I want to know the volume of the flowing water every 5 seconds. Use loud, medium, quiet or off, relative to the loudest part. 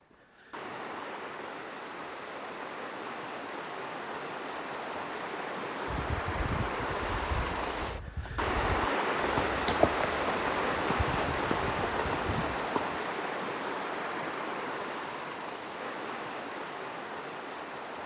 medium, loud, loud, medium.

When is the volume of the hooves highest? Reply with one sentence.
The loudest moment of the hooves is at 10 seconds.